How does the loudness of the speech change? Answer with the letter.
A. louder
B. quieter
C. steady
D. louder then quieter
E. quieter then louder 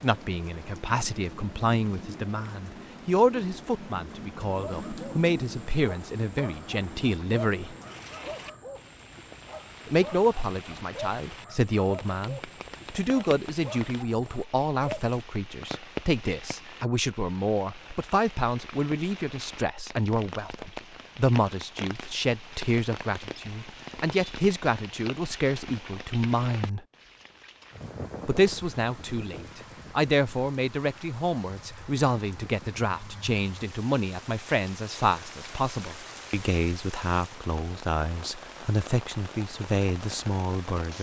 C.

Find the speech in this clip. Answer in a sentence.
You can hear the speech from 0.0 to 7.8 s, from 9.8 to 26.9 s and from 28.2 to 40.9 s.